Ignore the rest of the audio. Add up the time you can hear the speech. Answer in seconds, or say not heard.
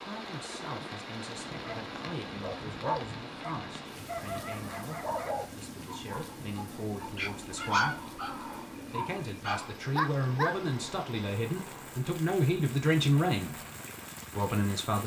13 s.